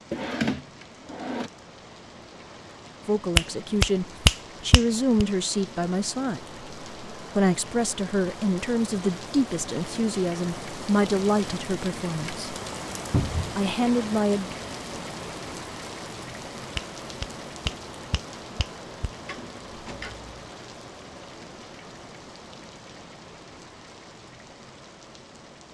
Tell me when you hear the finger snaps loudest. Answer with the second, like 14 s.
4 s.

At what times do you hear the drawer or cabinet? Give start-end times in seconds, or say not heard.
0.1-1.5, 13.1-13.6, 19.2-20.3.